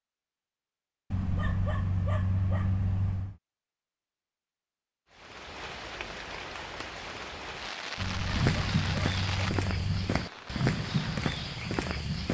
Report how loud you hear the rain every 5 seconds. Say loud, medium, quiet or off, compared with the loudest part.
off, loud, medium.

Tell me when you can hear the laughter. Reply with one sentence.
You can't hear the laughter here.